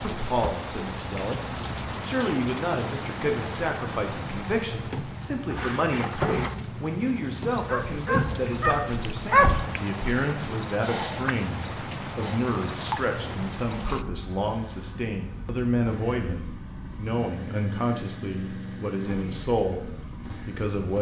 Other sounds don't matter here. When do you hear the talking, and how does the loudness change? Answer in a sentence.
The talking can be heard from 0.0 to 20.9 s, at a steady volume.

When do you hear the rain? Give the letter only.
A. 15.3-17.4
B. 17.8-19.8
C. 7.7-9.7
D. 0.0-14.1
D.